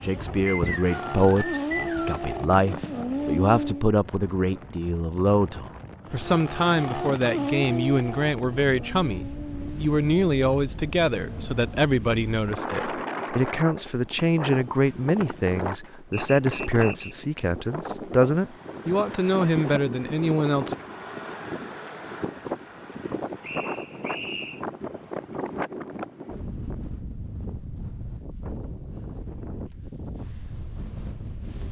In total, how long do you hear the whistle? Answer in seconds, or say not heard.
4 s.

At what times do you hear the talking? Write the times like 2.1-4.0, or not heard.
0.0-20.8.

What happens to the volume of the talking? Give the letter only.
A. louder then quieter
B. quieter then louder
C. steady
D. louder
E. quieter
C.